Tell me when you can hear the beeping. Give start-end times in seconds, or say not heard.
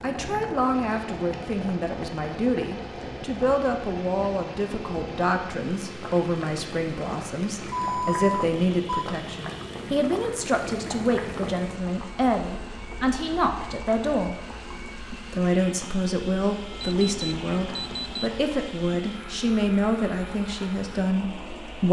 7.7-9.1, 16.8-18.3.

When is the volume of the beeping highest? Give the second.
8 s.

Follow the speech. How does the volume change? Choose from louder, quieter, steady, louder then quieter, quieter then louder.
steady.